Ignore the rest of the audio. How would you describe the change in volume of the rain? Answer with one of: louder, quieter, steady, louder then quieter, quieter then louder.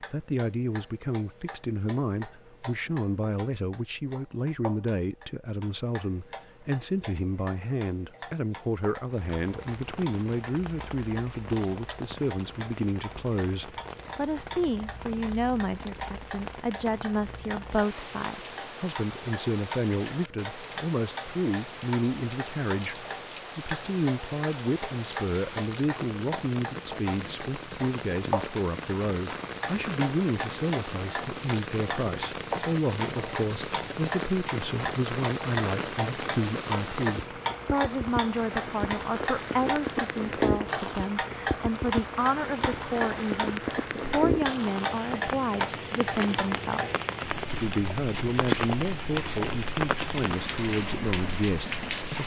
louder.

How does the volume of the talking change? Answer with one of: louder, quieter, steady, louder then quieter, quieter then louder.
steady.